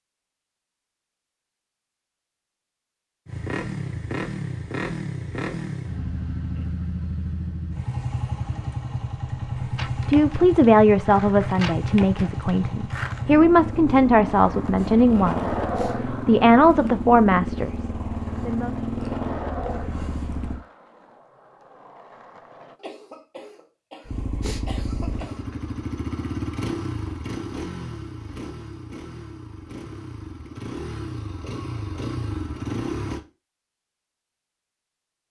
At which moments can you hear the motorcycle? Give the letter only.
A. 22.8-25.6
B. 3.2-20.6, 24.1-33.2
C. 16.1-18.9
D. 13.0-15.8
B.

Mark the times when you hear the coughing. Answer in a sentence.
The coughing can be heard from 22.8 to 25.6 s.